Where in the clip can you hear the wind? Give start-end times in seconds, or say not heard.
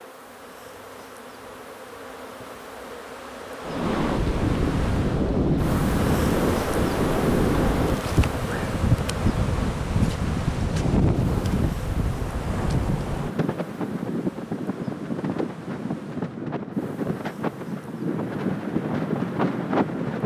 3.6-20.2.